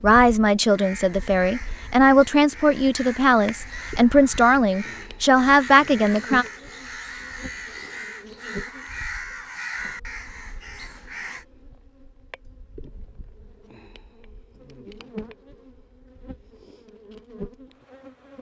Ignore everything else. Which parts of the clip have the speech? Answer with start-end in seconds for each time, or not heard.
0.0-6.5.